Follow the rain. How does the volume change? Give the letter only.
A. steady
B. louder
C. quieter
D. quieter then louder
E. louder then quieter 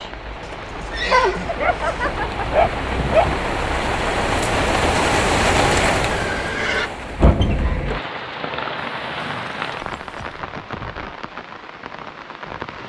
E.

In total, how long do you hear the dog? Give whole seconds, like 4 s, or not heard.
2 s.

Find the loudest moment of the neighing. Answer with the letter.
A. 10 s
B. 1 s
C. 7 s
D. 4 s
B.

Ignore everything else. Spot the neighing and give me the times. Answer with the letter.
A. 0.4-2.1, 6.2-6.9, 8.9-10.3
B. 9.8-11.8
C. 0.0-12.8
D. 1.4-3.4
A.